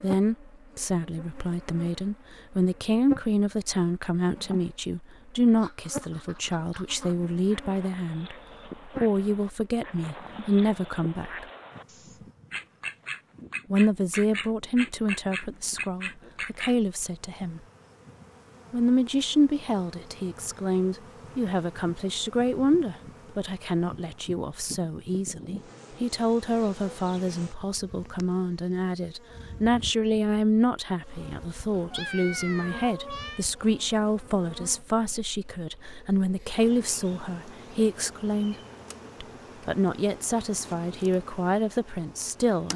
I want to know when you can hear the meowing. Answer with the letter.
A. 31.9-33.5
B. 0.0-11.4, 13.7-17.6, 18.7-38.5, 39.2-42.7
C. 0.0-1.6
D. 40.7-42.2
A.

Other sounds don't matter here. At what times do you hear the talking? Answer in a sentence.
The talking can be heard from 0.0 to 11.4 s, from 13.7 to 17.6 s, from 18.7 to 38.5 s and from 39.2 to 42.7 s.